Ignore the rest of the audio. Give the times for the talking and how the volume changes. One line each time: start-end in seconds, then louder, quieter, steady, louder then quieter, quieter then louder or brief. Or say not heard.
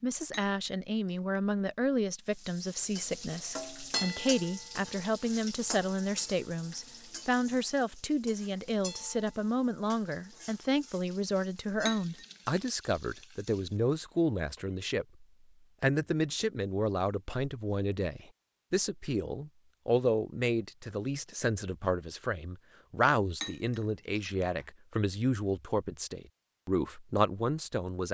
0.0-28.0 steady.